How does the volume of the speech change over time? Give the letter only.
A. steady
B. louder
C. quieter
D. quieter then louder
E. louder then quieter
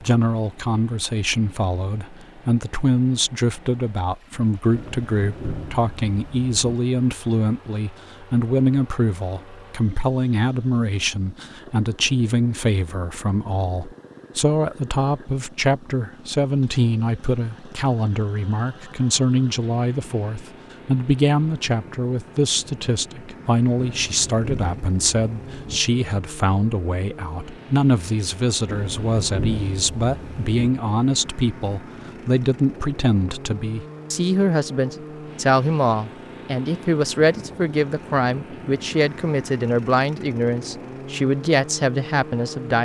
A.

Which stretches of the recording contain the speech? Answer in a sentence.
You can hear the speech from 0.0 to 42.8 s.